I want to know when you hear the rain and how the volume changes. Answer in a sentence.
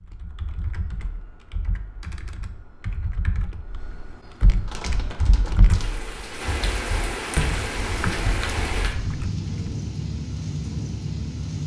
You can hear the rain from 4.7 to 11.6 s, getting louder.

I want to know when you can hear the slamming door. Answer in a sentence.
The slamming door can be heard from 7.3 to 7.7 s.